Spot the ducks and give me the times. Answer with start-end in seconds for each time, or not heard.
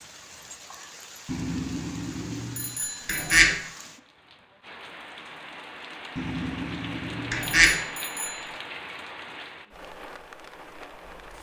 3.0-3.5, 7.3-7.8.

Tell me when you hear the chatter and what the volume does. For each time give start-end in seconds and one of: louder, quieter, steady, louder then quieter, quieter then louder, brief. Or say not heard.
not heard.